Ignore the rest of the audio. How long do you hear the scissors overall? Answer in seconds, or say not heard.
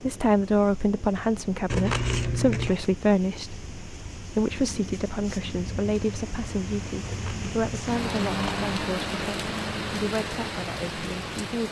3 s.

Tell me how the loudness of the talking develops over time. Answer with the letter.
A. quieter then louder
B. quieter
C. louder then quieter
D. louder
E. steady
B.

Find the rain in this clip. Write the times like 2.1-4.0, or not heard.
0.0-11.6.